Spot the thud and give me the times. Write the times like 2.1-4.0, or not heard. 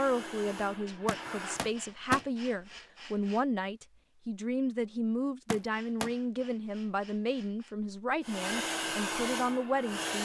1.1-2.2, 5.5-6.1.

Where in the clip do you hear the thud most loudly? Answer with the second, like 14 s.
2 s.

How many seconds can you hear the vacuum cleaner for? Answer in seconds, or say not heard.
4 s.